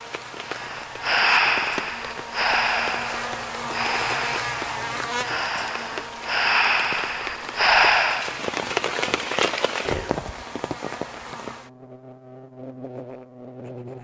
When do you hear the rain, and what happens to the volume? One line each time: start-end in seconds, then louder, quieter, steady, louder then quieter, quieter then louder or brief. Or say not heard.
0.0-11.6 louder.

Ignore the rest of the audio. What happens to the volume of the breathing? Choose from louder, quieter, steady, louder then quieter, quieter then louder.
quieter then louder.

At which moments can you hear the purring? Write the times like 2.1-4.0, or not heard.
not heard.